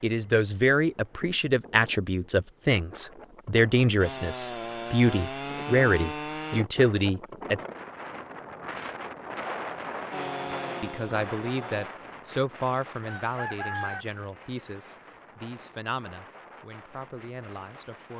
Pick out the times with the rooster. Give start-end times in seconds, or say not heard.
13.1-14.1.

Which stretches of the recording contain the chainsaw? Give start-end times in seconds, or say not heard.
4.0-6.7, 10.1-11.9.